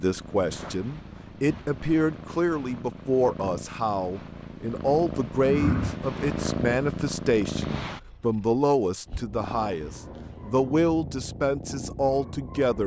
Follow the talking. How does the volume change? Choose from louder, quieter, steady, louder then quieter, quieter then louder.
steady.